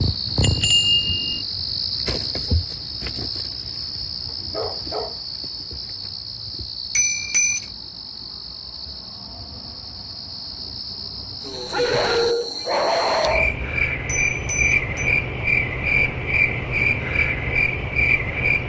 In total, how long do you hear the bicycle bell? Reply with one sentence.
The bicycle bell can be heard for 3 seconds in total.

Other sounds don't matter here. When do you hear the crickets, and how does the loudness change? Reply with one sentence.
You can hear the crickets from 0.0 to 18.6 s, getting quieter then louder.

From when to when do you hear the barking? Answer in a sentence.
You can hear the barking from 4.3 to 5.2 s and from 11.7 to 13.6 s.